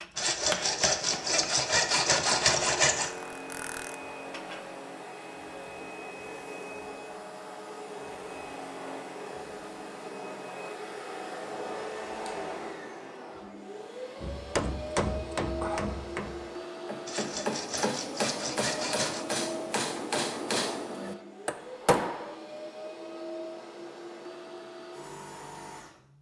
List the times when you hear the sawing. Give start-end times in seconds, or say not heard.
0.1-3.1, 17.1-19.2.